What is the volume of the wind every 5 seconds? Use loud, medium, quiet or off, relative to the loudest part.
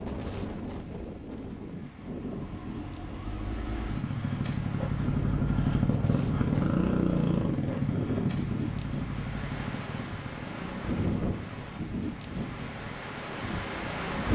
medium, loud, loud.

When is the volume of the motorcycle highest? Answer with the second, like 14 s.
7 s.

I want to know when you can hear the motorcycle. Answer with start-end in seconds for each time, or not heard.
2.0-14.2.